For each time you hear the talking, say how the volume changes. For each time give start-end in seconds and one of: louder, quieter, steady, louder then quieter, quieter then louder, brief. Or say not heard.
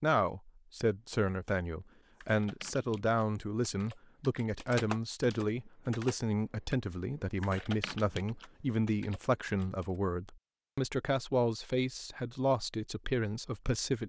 0.0-14.0 steady.